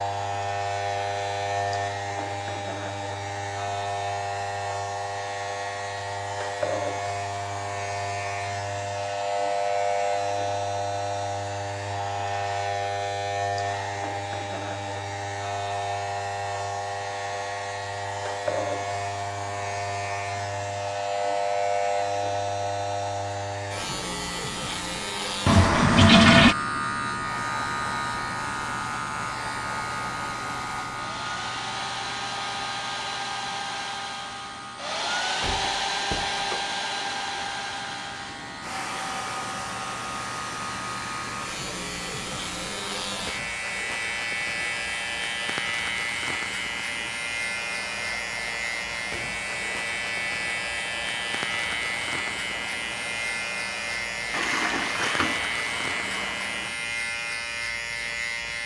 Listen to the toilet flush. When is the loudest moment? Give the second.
26 s.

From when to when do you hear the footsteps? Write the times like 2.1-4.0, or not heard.
not heard.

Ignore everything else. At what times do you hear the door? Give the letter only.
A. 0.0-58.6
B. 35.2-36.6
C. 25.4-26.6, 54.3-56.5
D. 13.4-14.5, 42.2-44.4
B.